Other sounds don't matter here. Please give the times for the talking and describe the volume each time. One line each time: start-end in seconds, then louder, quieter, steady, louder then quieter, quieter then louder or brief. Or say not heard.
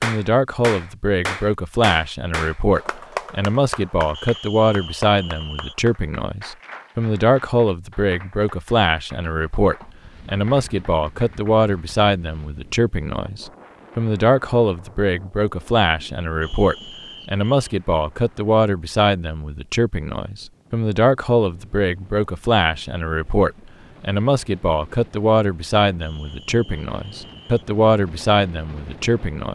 0.0-29.4 steady.